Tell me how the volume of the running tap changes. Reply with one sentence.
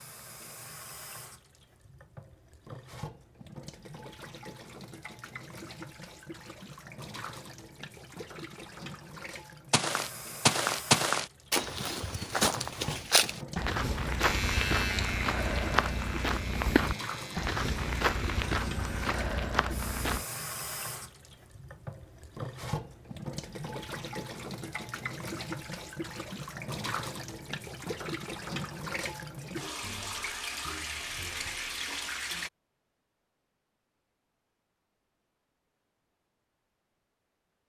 The volume of the running tap goes up.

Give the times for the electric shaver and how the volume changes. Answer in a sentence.
You can hear the electric shaver from 14.2 to 19.1 s, getting quieter.